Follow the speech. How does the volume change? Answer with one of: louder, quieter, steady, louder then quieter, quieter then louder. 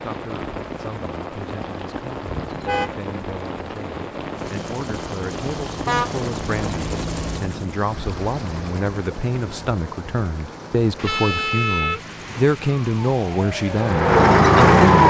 louder.